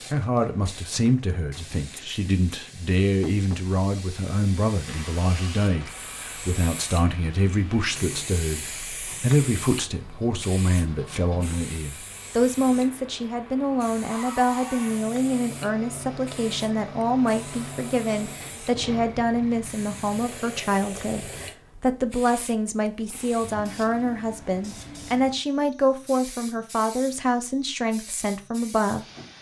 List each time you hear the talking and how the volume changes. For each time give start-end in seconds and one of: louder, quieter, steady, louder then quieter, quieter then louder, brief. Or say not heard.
0.1-29.3 steady.